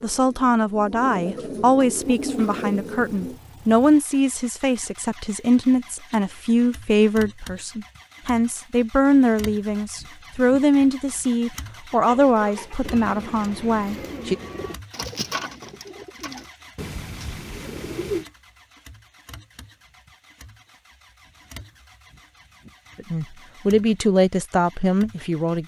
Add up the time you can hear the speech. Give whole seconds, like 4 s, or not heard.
17 s.